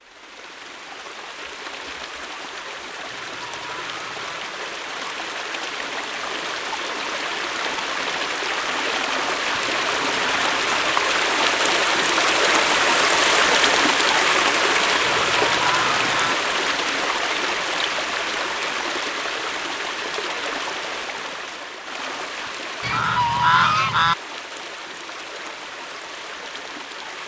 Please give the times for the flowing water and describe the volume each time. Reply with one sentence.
You can hear the flowing water from 0.0 to 27.2 s, getting louder then quieter.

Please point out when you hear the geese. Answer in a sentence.
The geese can be heard from 3.0 to 4.4 s, from 9.6 to 10.7 s, from 15.0 to 16.4 s and from 22.8 to 24.1 s.